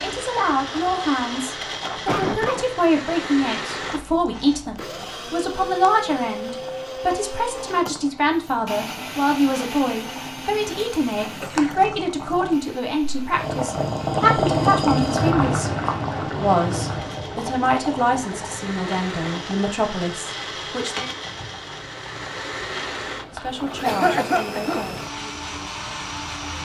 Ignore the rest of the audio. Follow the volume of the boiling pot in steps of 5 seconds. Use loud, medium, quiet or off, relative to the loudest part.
quiet, quiet, loud, loud, quiet, quiet.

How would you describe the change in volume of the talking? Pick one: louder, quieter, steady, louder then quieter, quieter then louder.
quieter.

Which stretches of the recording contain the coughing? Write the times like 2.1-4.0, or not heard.
2.0-2.6, 11.4-11.9, 23.8-24.9.